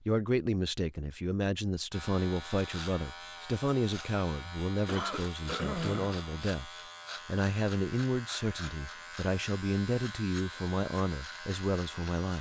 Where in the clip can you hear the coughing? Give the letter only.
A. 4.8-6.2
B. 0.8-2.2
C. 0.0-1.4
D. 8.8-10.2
A.